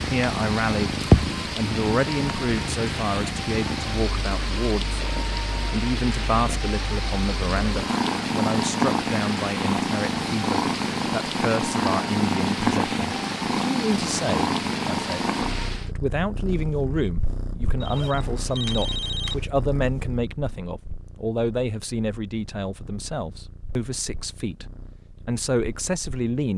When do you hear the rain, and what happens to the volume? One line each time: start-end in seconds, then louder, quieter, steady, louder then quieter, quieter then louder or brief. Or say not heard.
0.0-15.9 steady.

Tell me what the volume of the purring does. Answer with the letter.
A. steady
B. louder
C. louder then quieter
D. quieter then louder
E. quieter
E.